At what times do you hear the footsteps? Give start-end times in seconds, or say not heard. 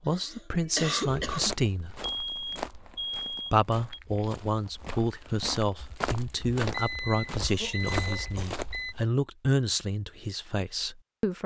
1.1-9.1.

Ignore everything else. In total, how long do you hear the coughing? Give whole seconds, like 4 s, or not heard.
3 s.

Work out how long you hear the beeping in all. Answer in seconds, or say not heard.
4 s.